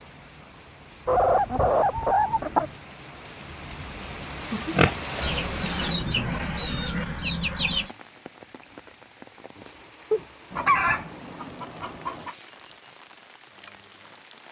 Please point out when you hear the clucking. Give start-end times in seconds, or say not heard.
1.1-2.7, 5.2-7.9, 10.1-12.3.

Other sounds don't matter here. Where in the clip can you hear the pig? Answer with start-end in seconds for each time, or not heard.
4.5-5.3.